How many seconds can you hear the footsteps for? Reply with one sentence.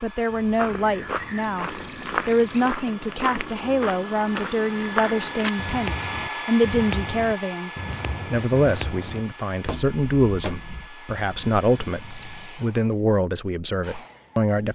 The footsteps can be heard for 10 seconds in total.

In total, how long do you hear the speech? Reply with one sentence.
You can hear the speech for 15 seconds altogether.